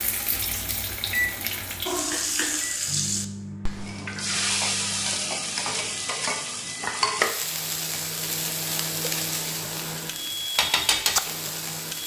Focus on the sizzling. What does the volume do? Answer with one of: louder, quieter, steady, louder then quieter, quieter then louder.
steady.